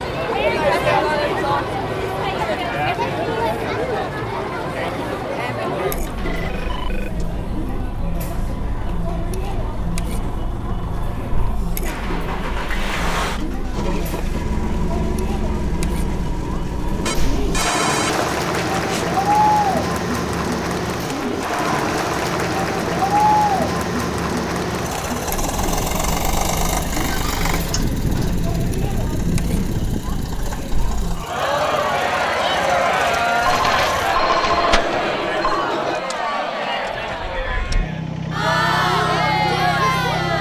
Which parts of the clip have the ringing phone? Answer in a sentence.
You can hear the ringing phone from 6.2 to 7.2 s, from 17.1 to 19.1 s and from 33.4 to 35.6 s.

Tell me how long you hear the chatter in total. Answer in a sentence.
You can hear the chatter for 40 seconds altogether.